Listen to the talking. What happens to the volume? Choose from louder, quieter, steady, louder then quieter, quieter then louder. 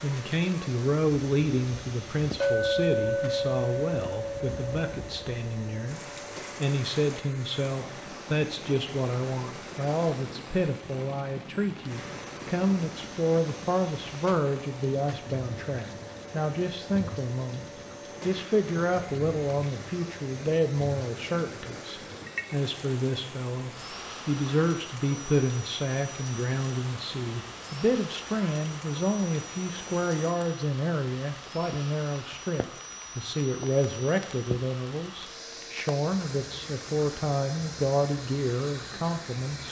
steady.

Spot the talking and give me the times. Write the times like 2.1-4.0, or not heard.
0.0-39.6.